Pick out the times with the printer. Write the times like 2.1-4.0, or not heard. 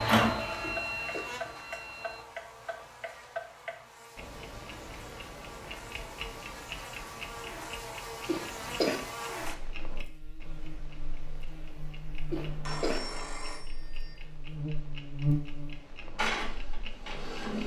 0.0-2.2, 16.1-17.6.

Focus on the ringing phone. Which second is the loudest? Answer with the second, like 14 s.
13 s.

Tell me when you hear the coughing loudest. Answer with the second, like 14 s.
9 s.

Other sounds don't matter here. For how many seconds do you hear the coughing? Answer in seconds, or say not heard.
2 s.